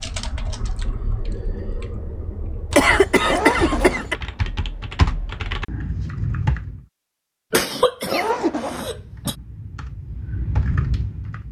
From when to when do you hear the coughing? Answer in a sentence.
The coughing can be heard from 2.7 to 4.2 s and from 7.5 to 9.3 s.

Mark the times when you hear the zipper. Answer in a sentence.
The zipper can be heard from 3.2 to 4.0 s and from 8.1 to 8.9 s.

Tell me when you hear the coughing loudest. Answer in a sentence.
The loudest moment of the coughing is at 3 seconds.